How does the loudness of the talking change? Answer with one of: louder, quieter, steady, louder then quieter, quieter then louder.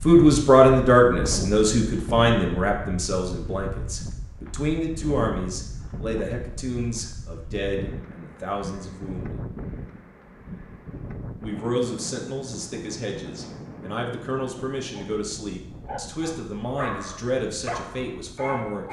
quieter.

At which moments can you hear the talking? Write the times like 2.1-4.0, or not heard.
0.0-9.4, 11.4-18.8.